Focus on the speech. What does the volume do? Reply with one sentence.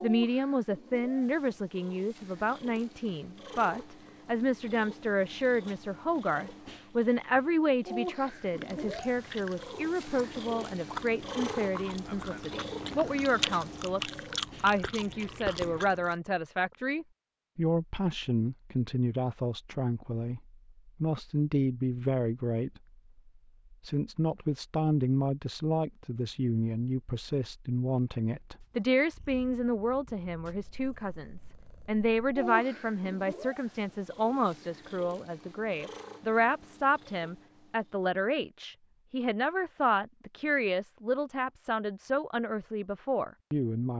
The volume of the speech stays about the same.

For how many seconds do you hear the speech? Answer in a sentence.
You can hear the speech for 43 seconds altogether.